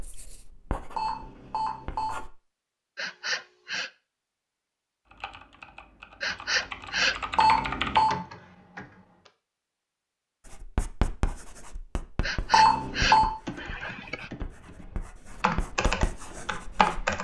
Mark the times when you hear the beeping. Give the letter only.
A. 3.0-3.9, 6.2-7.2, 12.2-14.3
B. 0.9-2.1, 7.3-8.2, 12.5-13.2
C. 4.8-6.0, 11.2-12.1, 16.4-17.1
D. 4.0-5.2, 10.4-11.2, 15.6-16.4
B.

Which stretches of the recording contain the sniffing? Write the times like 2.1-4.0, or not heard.
3.0-3.9, 6.2-7.2, 12.2-14.3.